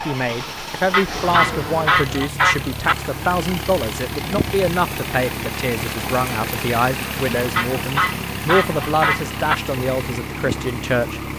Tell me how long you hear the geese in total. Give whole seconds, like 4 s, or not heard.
4 s.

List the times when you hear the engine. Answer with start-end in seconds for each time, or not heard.
0.0-11.3.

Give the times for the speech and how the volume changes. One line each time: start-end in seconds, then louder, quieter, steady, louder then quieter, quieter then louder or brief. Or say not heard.
0.1-11.2 steady.